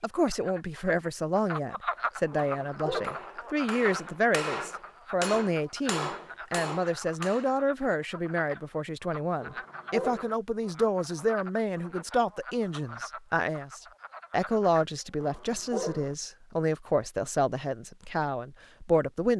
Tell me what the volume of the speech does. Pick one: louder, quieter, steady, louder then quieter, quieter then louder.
steady.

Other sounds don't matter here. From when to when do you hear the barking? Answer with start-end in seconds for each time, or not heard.
2.3-3.2, 9.4-10.3, 15.2-16.1.